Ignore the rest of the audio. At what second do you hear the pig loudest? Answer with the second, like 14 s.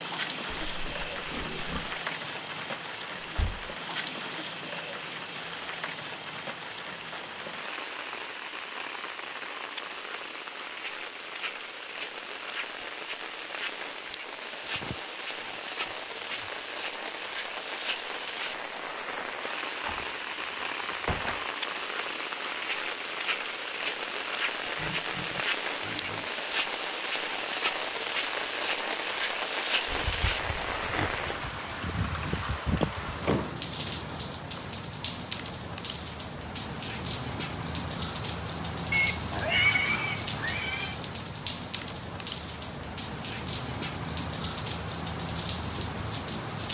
40 s.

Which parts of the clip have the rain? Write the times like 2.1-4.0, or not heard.
0.0-46.7.